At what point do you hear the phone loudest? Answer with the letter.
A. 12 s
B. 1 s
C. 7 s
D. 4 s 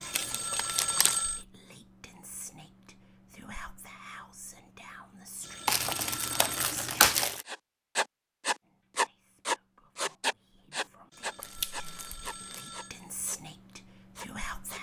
B.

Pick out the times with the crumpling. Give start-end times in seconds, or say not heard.
0.1-1.2, 5.7-7.5, 11.4-12.7.